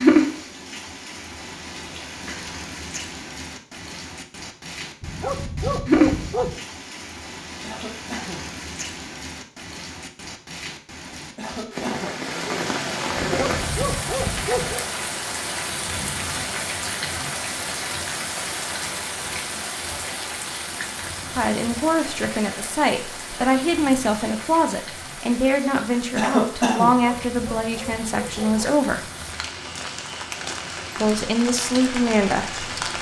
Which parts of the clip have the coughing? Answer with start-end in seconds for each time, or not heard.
7.6-8.6, 11.3-12.2, 26.1-26.9.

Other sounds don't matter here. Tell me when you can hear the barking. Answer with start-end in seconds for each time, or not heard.
5.0-6.6, 13.2-14.8, 27.0-28.7.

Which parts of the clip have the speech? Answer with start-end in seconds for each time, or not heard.
21.4-29.1, 30.9-32.6.